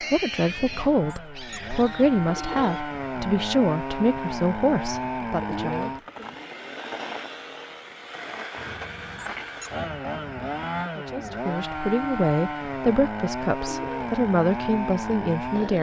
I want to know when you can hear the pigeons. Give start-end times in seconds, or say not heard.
2.2-2.9, 5.4-6.0, 13.6-14.1.